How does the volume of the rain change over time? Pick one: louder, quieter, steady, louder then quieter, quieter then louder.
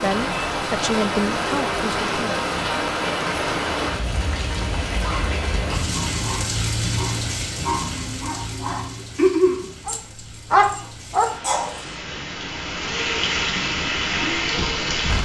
quieter then louder.